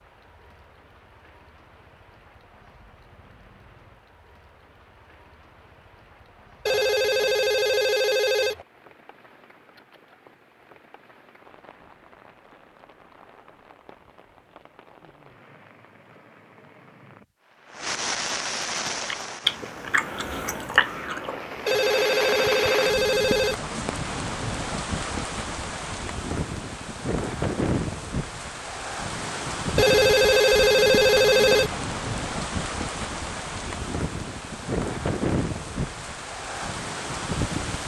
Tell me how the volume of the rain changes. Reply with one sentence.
The loudness of the rain goes up.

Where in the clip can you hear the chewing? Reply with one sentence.
You can hear the chewing from 18.9 to 21.8 s.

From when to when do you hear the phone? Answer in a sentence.
You can hear the phone from 6.7 to 8.7 s, from 21.6 to 23.6 s and from 29.8 to 31.8 s.